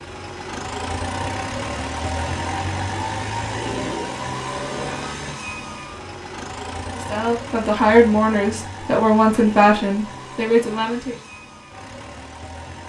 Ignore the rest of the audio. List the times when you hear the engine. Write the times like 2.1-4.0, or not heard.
0.0-12.8.